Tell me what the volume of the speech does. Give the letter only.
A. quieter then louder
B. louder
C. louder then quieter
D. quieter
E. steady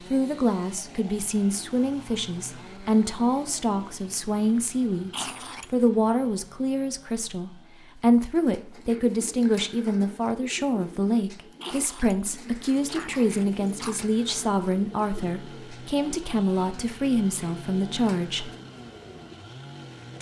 E.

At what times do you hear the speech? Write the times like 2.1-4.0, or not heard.
0.1-18.5.